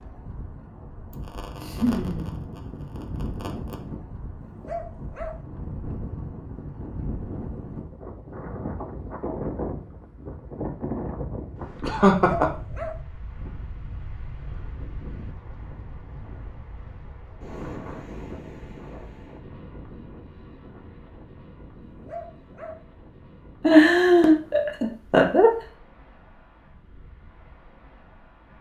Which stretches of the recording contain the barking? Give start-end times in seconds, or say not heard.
4.4-5.3, 12.2-13.0, 21.8-22.8.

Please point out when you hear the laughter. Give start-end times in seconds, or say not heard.
1.1-3.8, 11.8-12.5, 23.6-25.5.